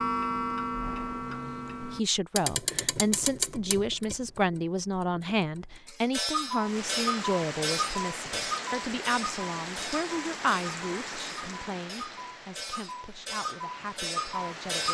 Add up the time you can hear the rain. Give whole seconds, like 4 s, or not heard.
8 s.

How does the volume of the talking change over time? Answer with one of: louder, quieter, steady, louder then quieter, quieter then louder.
quieter.